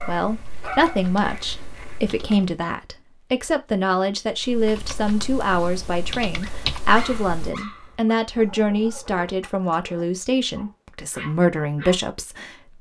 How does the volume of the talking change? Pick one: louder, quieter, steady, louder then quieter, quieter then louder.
steady.